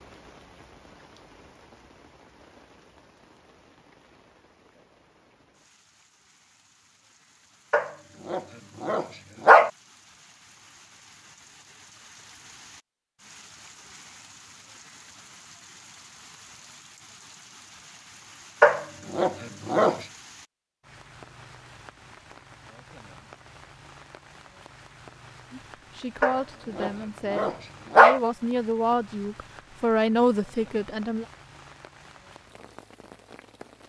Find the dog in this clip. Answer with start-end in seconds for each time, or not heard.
7.7-9.7, 18.6-20.1, 26.2-28.2.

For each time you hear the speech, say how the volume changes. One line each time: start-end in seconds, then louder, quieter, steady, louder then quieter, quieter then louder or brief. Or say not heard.
25.5-31.2 louder.